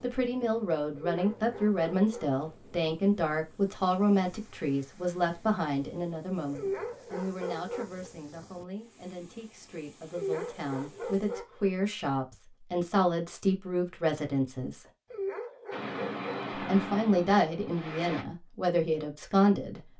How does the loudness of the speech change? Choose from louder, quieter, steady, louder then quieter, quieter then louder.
quieter then louder.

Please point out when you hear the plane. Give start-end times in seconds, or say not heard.
15.7-18.2.